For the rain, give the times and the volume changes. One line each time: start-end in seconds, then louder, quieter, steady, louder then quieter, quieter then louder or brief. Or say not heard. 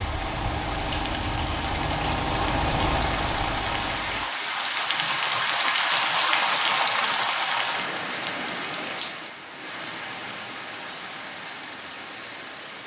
0.0-12.8 louder then quieter.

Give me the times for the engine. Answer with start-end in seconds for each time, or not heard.
0.0-4.3.